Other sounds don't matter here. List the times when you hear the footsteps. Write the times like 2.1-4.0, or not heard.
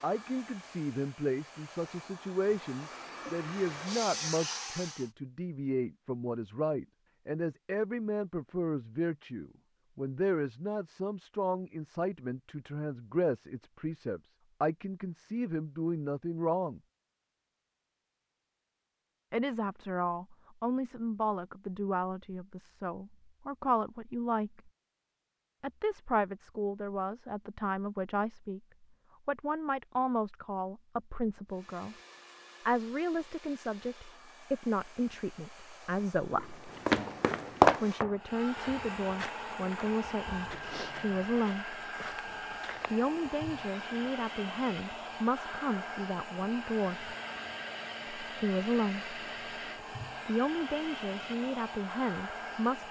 36.9-43.0.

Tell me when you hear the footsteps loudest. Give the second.
38 s.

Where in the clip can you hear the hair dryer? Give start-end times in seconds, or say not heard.
0.0-5.1, 31.4-52.8.